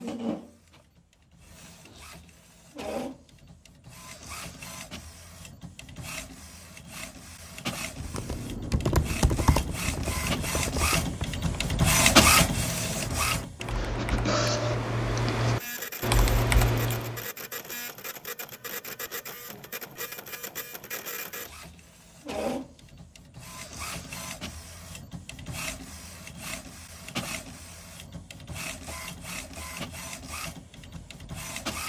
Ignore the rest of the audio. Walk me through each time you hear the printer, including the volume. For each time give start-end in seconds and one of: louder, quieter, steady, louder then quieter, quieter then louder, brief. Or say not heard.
0.0-31.8 louder then quieter.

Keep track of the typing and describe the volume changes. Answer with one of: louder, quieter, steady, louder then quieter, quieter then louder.
quieter then louder.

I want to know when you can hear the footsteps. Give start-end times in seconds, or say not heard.
not heard.